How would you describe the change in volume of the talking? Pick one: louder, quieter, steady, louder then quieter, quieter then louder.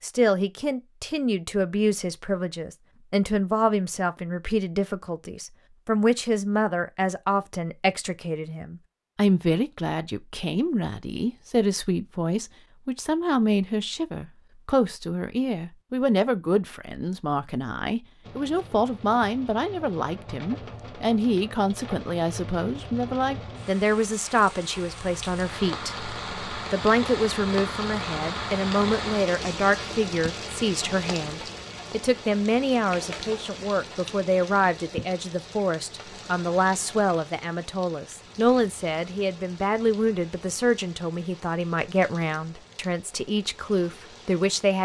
steady.